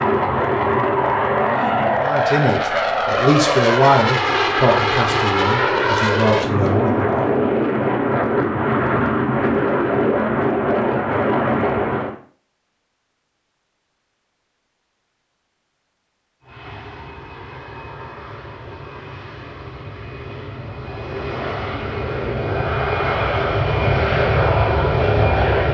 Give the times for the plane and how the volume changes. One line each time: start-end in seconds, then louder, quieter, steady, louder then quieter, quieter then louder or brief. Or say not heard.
0.0-12.2 steady
16.4-25.6 louder.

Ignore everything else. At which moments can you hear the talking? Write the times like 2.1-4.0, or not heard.
2.0-7.1.